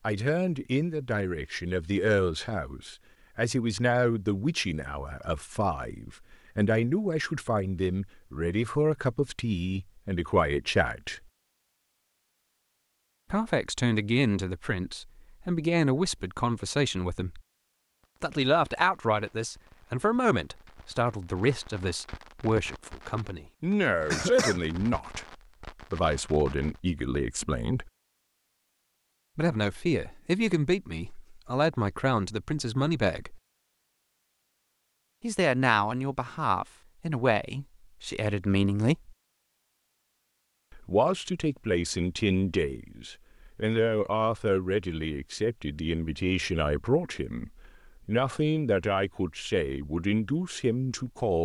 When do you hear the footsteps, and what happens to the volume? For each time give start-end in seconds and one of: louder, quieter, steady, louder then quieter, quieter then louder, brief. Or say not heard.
not heard.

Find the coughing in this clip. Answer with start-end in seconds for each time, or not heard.
24.1-24.6.